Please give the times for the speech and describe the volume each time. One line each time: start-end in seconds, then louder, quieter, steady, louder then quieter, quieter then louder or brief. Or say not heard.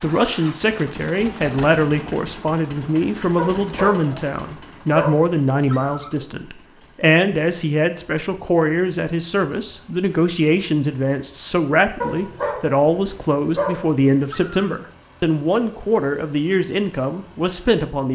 0.0-18.1 steady.